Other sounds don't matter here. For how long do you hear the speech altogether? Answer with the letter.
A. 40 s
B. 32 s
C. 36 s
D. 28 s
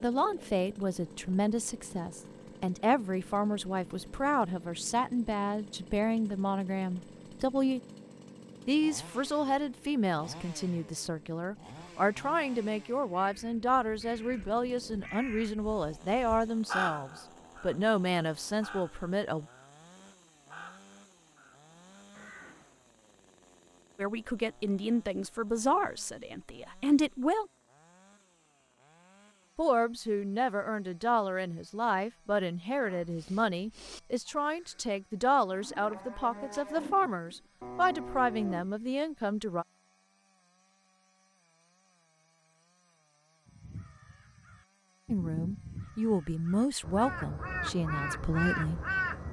C.